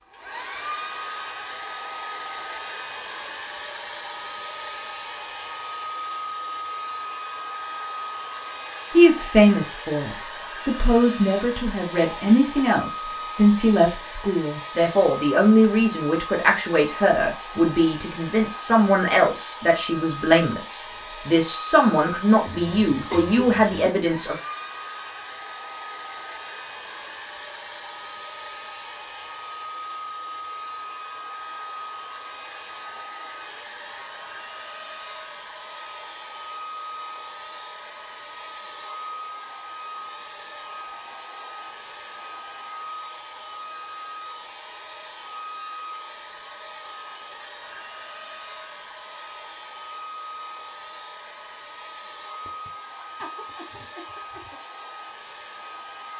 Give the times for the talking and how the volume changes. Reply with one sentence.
The talking can be heard from 8.9 to 24.4 s, at a steady volume.